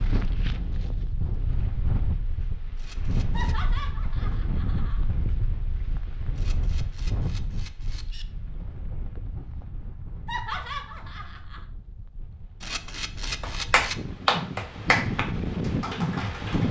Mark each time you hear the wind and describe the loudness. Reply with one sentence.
You can hear the wind from 0.0 to 16.6 s, getting quieter then louder.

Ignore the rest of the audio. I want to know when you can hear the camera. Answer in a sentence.
The camera can be heard from 2.8 to 3.6 s, from 6.3 to 8.2 s and from 12.6 to 14.0 s.